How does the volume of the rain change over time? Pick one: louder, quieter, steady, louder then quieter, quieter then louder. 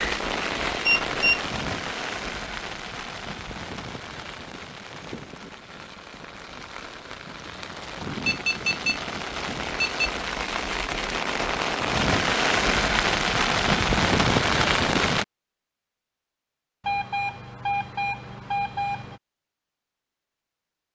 quieter then louder.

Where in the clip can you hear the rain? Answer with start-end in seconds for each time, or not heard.
0.0-15.2.